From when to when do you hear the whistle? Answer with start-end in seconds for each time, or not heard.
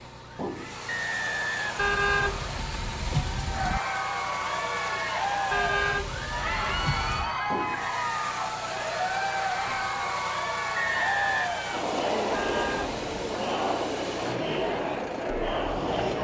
0.8-2.6, 10.8-11.5.